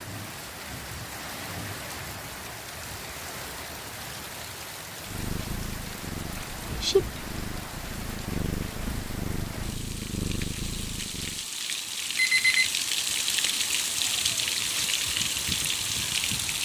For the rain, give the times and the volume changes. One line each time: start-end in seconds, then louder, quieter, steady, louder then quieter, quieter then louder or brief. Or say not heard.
0.0-16.6 louder.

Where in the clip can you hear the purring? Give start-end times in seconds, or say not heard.
5.0-11.4.